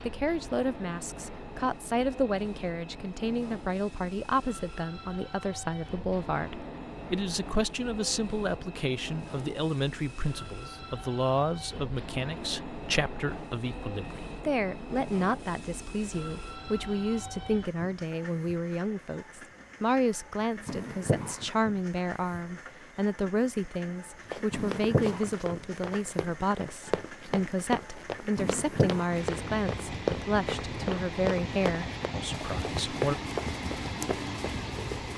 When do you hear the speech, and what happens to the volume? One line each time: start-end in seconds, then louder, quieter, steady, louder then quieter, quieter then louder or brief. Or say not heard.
0.1-33.1 steady.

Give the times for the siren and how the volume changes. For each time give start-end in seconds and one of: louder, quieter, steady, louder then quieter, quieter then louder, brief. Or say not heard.
not heard.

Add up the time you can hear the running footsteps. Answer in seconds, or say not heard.
11 s.